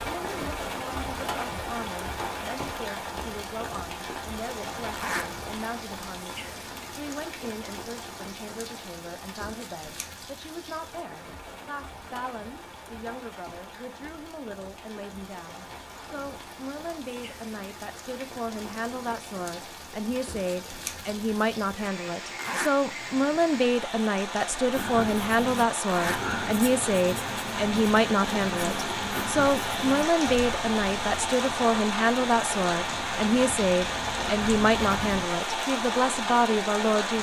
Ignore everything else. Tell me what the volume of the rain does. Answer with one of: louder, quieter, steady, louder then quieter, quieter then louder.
quieter then louder.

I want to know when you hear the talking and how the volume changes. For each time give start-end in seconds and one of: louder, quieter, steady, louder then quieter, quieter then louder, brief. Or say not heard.
0.0-37.1 louder.